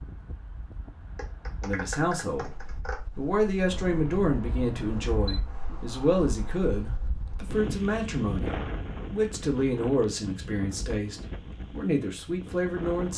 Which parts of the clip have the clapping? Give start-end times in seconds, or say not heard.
1.1-3.0.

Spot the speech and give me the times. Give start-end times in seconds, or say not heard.
1.6-13.1.